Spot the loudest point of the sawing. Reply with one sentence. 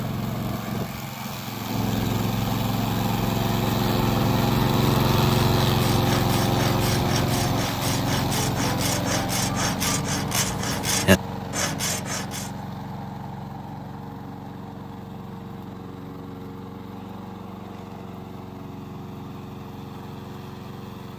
The loudest moment of the sawing is at 11 seconds.